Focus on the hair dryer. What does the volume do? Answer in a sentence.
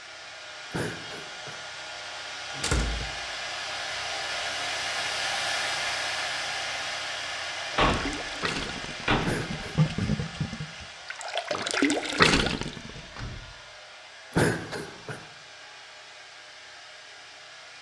The volume of the hair dryer goes up, then down.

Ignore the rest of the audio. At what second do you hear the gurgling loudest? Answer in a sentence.
The volume of the gurgling peaks at 12 seconds.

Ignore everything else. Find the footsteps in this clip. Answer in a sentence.
The footsteps can't be heard in this clip.